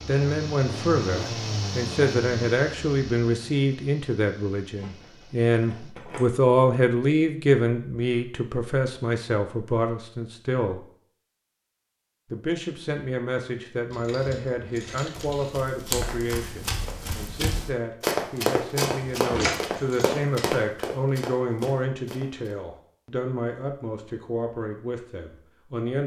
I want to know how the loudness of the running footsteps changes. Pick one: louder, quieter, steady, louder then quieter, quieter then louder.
louder then quieter.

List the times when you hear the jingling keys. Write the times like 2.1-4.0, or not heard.
4.8-6.3, 13.9-15.7, 19.1-20.2.